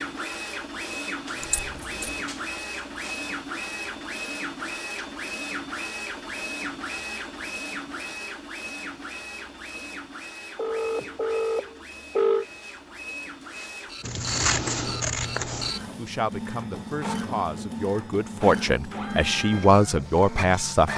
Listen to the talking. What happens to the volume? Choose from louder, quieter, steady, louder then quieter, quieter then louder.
louder.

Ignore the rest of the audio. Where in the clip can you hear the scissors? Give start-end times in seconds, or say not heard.
1.4-2.2, 14.0-15.8.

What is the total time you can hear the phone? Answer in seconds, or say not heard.
2 s.